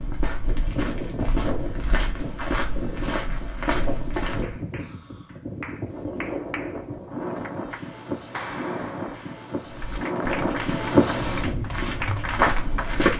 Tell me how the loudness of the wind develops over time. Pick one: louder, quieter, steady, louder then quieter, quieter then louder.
louder.